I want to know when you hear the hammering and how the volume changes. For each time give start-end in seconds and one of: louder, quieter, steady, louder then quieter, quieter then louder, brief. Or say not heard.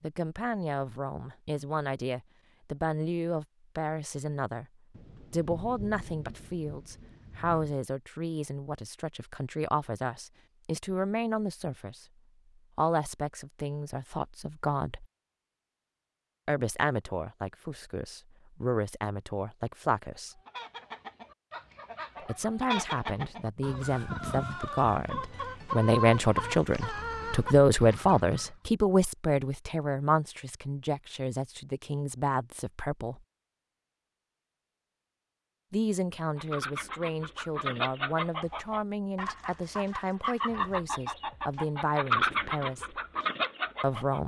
not heard.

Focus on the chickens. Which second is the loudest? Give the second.
42 s.